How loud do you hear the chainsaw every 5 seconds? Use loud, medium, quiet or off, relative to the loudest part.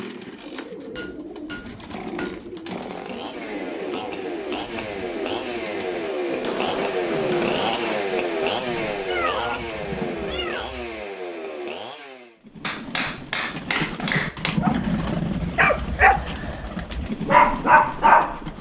medium, loud, medium, off.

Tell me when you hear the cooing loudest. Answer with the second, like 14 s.
15 s.